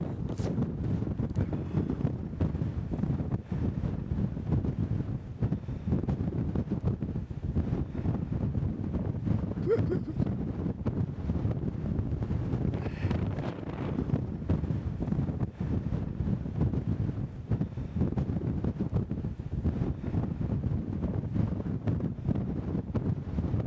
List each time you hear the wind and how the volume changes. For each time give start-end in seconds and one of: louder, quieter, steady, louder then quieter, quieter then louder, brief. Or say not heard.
0.0-23.6 steady.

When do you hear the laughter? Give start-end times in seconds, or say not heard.
9.6-10.3.